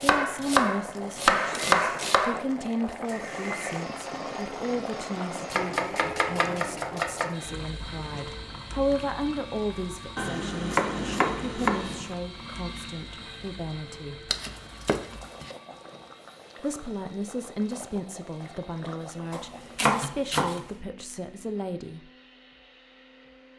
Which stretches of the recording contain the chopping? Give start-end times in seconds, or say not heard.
0.0-2.4, 5.5-7.3, 10.2-12.1, 14.3-15.5, 19.3-20.6.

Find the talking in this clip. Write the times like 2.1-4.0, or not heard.
0.0-14.3, 16.6-22.1.